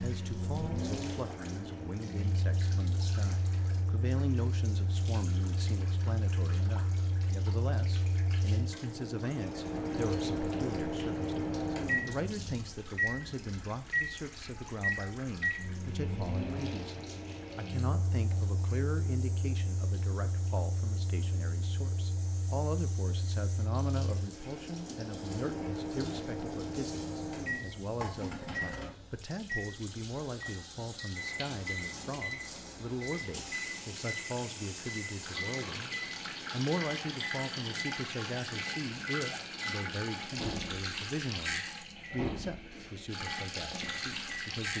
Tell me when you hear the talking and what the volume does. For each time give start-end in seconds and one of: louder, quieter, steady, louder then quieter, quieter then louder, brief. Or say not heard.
0.0-44.7 steady.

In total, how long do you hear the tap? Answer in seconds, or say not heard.
45 s.